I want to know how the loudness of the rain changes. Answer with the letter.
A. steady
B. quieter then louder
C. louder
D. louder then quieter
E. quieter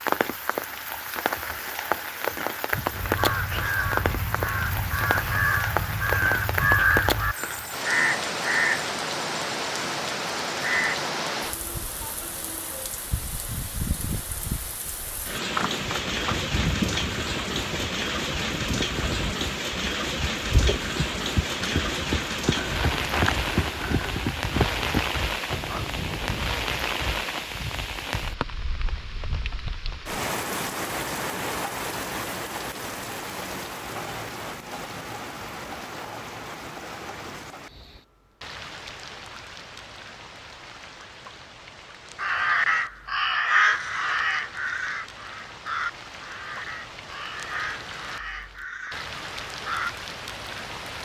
E.